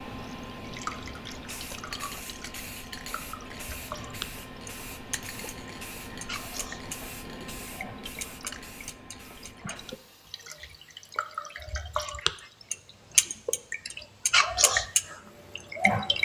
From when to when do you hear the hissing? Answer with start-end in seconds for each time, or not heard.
0.0-16.2.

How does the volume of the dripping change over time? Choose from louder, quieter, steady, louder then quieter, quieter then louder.
louder.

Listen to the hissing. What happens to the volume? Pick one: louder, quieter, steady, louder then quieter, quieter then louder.
quieter.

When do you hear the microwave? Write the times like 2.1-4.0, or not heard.
not heard.